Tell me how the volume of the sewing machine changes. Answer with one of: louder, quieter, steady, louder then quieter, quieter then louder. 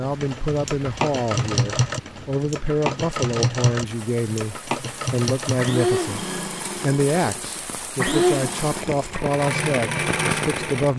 steady.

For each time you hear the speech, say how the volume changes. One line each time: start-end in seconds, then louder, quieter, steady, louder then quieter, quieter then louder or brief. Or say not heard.
0.0-10.9 steady.